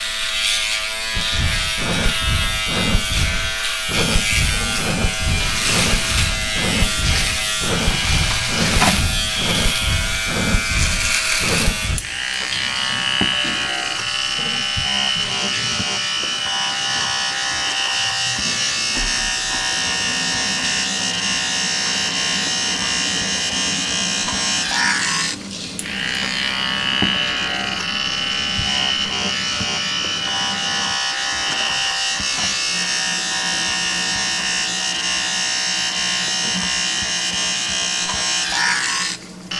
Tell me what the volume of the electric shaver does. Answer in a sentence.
The volume of the electric shaver stays about the same.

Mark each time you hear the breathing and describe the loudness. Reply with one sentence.
You can hear the breathing from 1.1 to 12.1 s, at a steady volume.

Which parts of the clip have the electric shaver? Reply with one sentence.
You can hear the electric shaver from 0.0 to 39.5 s.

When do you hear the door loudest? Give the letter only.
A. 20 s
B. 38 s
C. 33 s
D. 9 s
D.